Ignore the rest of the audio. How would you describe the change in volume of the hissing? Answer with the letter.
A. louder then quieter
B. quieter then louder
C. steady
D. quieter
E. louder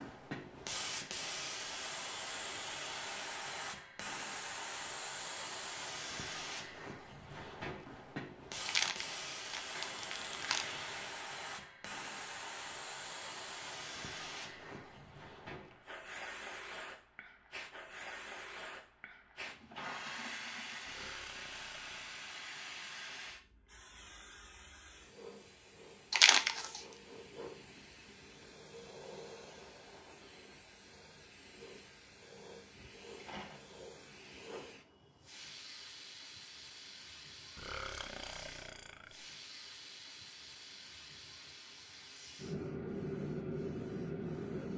B.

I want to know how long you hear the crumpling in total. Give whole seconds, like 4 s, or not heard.
3 s.